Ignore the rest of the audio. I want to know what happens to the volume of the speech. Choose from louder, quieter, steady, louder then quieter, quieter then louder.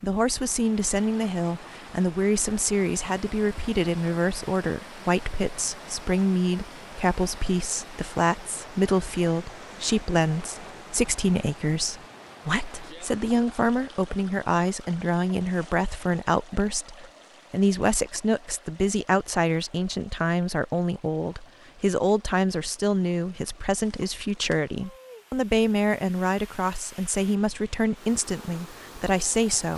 steady.